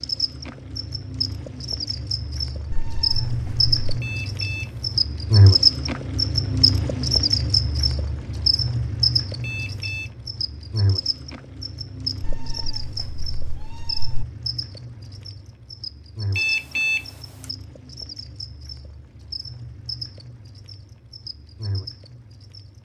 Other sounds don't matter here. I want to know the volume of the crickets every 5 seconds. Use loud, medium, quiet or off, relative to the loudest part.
medium, loud, medium, quiet, quiet.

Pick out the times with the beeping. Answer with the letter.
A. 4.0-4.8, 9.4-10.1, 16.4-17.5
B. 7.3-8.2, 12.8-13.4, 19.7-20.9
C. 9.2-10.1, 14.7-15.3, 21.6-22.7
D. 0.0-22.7
A.